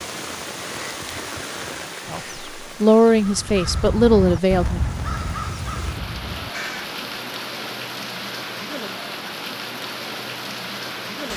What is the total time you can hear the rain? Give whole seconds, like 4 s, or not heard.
11 s.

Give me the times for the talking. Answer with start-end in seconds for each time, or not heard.
2.0-4.8.